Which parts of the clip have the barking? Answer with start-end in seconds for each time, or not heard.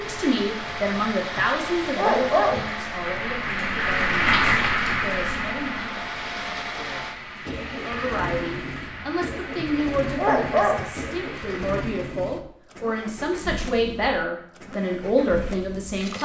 0.7-2.6, 8.9-10.8.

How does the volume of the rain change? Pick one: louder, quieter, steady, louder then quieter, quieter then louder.
louder then quieter.